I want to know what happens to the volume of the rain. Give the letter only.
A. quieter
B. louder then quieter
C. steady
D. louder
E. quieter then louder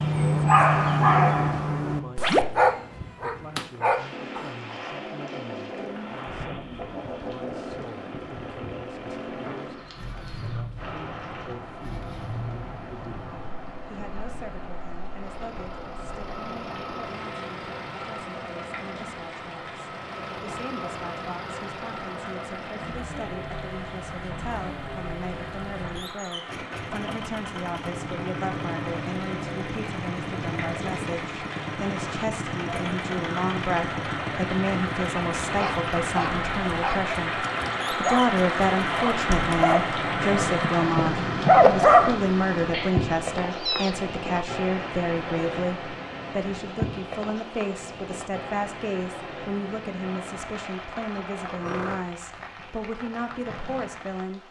B.